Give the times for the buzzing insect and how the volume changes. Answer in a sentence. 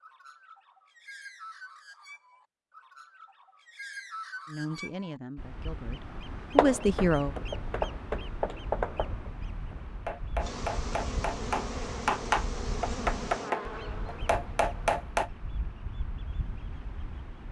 You can hear the buzzing insect from 10.4 to 15.0 s, getting quieter.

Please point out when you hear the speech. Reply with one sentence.
You can hear the speech from 4.5 to 7.3 s.